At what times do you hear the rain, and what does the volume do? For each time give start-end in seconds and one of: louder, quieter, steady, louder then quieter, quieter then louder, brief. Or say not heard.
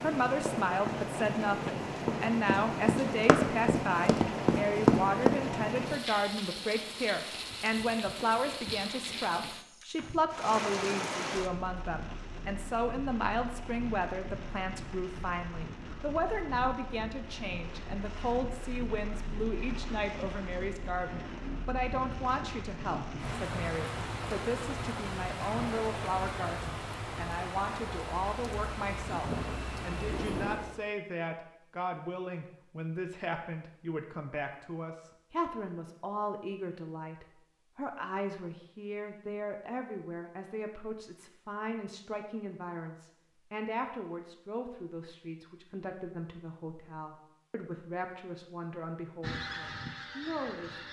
0.0-30.9 quieter then louder.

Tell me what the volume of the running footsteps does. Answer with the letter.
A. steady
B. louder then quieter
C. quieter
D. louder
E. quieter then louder
D.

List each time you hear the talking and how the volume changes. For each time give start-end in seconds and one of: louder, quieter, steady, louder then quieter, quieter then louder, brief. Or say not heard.
0.0-50.8 quieter.